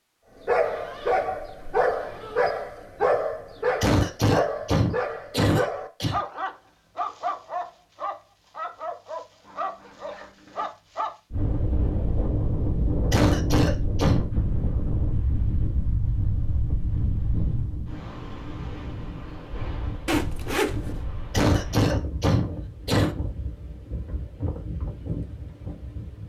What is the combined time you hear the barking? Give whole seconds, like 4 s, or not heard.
11 s.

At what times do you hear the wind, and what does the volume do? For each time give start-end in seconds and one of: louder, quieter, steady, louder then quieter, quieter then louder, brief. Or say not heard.
11.3-26.2 quieter.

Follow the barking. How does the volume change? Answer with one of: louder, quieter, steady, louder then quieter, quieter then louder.
quieter.